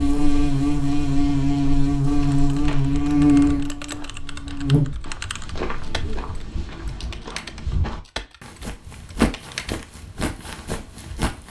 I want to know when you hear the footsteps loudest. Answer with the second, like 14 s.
9 s.